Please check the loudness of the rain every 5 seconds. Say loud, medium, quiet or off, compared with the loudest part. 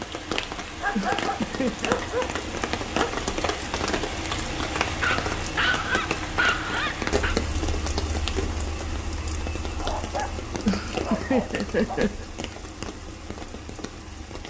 loud, loud, medium.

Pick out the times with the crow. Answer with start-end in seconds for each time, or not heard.
not heard.